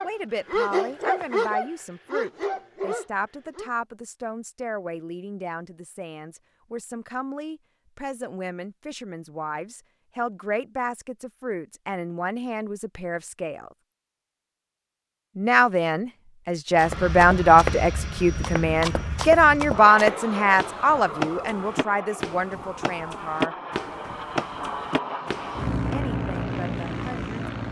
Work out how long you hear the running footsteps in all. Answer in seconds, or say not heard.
9 s.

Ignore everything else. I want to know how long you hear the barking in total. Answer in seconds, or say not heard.
4 s.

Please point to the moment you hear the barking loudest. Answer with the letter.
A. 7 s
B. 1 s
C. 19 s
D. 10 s
B.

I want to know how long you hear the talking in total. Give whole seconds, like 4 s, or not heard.
23 s.